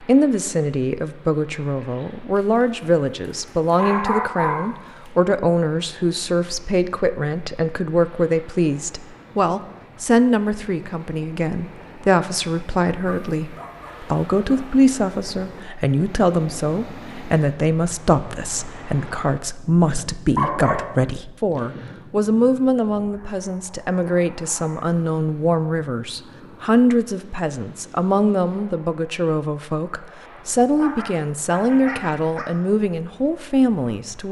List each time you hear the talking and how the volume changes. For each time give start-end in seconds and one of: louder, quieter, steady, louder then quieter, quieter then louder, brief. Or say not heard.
0.0-34.2 steady.